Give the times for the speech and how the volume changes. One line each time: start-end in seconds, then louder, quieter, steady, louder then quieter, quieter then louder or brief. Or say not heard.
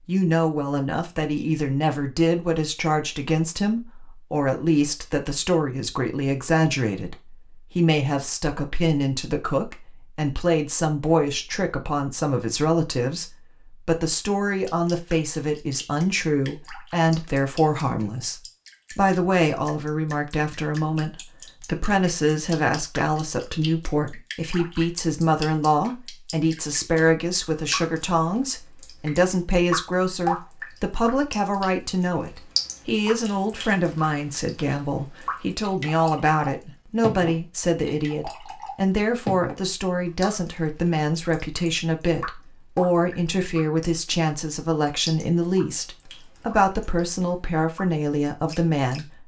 0.1-49.2 steady.